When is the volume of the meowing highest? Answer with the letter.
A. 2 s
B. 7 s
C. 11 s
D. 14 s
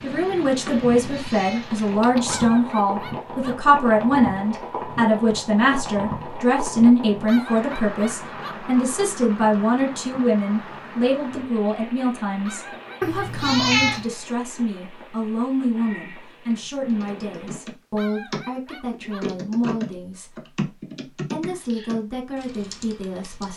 D.